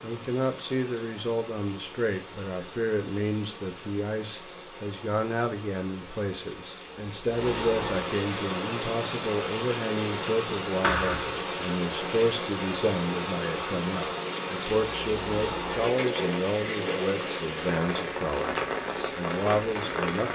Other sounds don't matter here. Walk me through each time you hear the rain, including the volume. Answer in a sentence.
The rain can be heard from 0.0 to 20.3 s, getting louder.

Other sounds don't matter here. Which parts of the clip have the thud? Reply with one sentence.
You can hear the thud from 10.8 to 11.4 s.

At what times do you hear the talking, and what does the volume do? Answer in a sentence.
You can hear the talking from 0.0 to 20.3 s, at a steady volume.